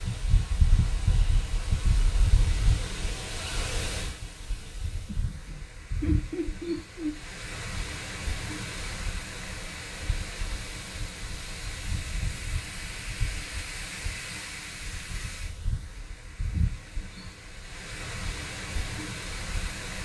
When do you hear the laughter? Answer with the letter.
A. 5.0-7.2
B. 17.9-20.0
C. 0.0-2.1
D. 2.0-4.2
A.